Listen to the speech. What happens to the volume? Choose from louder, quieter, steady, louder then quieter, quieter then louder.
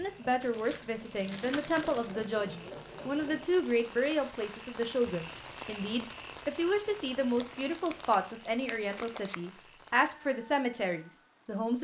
steady.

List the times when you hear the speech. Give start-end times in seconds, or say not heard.
0.0-11.7.